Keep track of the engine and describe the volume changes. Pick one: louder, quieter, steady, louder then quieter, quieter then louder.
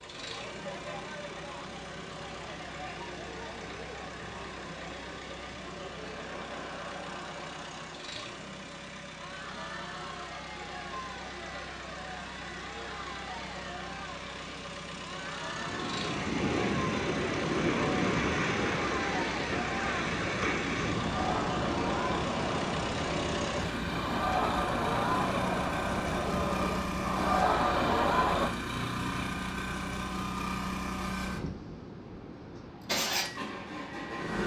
louder.